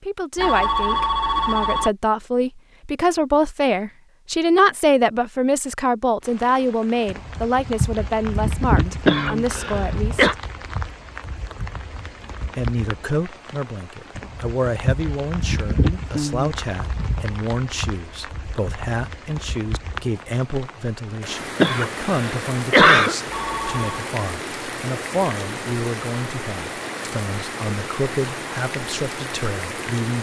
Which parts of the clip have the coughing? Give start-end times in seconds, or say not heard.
9.1-10.3, 21.6-23.1.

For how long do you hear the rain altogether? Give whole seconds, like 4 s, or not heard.
24 s.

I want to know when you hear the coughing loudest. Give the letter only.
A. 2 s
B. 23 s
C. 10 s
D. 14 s
B.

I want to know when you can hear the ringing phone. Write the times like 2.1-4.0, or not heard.
0.3-1.9, 23.2-24.1.